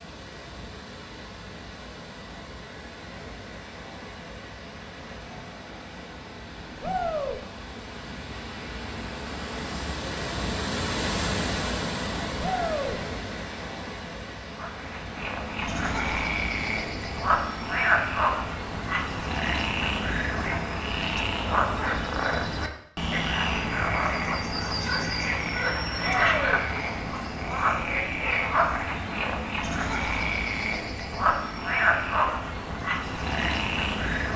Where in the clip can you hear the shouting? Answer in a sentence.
The shouting can be heard from 6.8 to 7.4 s, from 12.4 to 13.0 s and from 26.0 to 26.6 s.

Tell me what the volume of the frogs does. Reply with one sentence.
The loudness of the frogs stays about the same.